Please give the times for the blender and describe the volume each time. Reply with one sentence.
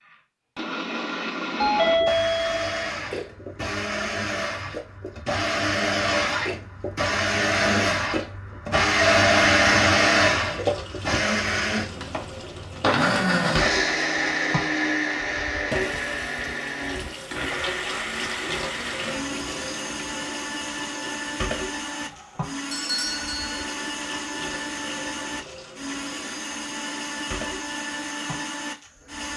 The blender can be heard from 0.1 to 29.3 s, getting louder then quieter.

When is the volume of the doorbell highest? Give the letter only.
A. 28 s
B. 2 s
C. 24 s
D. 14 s
B.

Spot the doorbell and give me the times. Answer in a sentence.
The doorbell can be heard from 1.6 to 2.9 s and from 22.7 to 23.7 s.